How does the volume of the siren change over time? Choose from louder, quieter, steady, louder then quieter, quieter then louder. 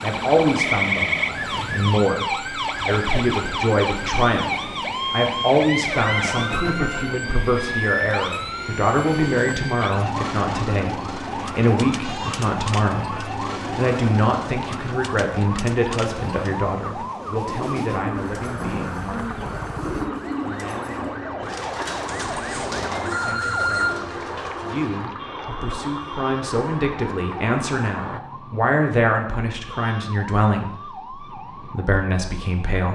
quieter.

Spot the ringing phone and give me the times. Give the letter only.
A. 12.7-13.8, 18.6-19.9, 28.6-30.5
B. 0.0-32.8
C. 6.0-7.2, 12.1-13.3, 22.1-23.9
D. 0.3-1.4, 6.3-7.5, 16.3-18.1
C.